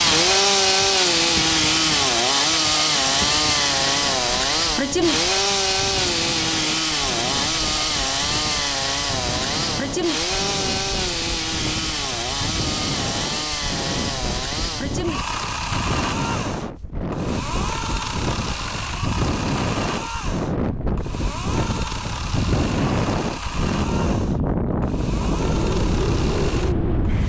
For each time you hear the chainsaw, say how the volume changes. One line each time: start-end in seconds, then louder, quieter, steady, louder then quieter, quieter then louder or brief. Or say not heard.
0.0-27.2 quieter.